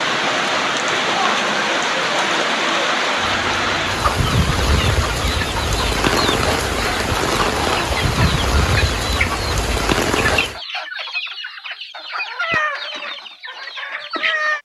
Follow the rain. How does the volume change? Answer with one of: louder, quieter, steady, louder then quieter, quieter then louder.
steady.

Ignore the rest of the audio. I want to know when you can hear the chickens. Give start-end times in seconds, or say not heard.
3.1-14.6.